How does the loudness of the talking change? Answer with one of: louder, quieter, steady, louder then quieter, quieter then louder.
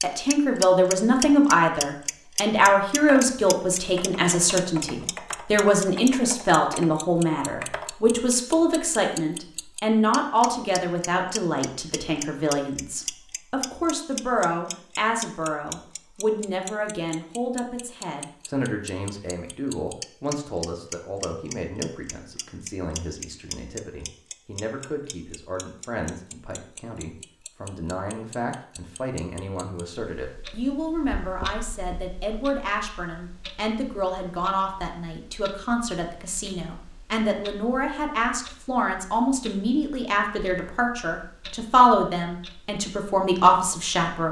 quieter then louder.